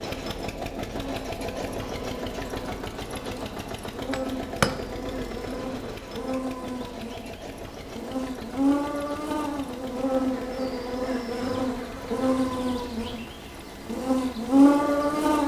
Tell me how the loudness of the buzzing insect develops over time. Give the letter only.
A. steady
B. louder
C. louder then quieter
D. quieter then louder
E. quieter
B.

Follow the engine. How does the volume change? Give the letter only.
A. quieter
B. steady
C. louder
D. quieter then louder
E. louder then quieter
A.